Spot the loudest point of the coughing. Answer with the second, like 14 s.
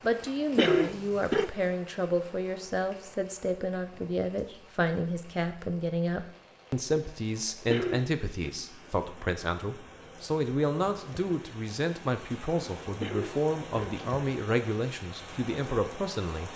1 s.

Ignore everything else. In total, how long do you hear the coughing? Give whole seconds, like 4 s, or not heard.
3 s.